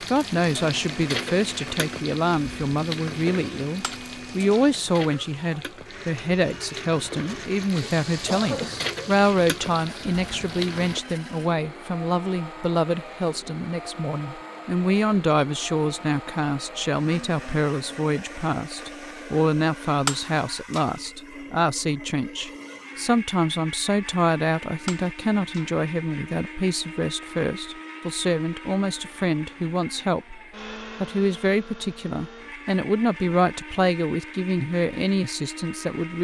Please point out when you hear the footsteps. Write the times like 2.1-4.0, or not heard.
not heard.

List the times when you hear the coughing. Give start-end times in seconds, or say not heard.
7.8-8.9.